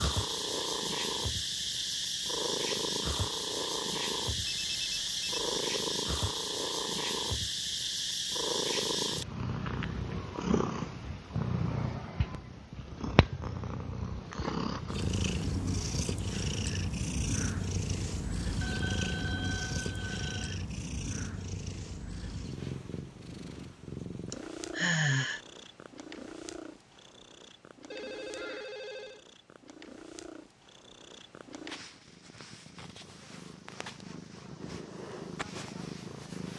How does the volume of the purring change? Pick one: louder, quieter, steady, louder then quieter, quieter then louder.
quieter.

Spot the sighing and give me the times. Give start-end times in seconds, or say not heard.
24.3-25.4.